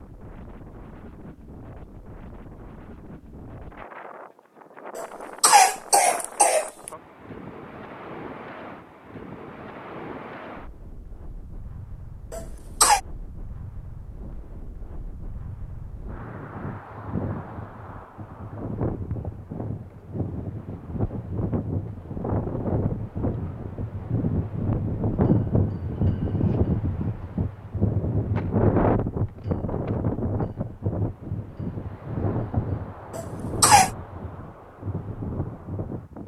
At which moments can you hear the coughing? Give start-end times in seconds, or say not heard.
5.0-6.9, 12.3-13.0, 33.1-33.9.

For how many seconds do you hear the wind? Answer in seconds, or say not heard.
36 s.